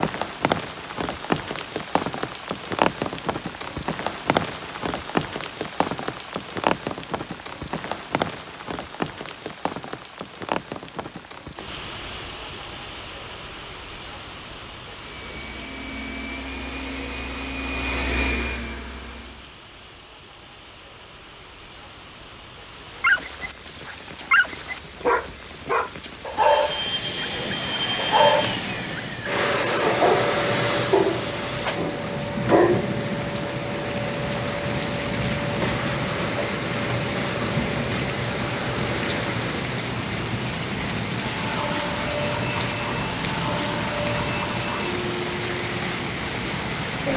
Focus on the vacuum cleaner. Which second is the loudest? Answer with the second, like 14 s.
30 s.